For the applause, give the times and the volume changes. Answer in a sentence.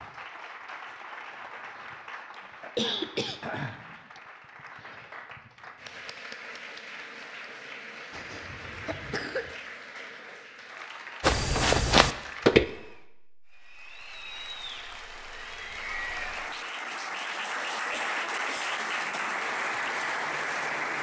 You can hear the applause from 0.0 to 20.9 s, getting louder.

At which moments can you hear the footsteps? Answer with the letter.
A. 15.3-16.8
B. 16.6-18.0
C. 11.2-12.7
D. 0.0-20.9
C.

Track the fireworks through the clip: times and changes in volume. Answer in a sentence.
You can't hear the fireworks here.